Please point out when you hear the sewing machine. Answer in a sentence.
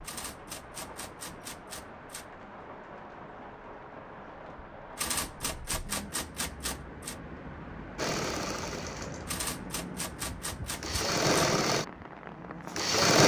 The sewing machine can be heard from 8.0 to 13.2 s.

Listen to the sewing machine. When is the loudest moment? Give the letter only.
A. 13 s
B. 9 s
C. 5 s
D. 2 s
A.